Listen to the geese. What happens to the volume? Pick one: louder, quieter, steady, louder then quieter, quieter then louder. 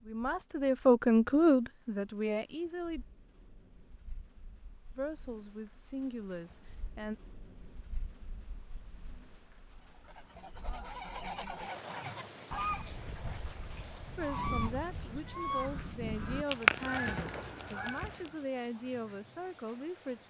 louder.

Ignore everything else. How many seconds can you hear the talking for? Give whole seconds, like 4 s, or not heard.
11 s.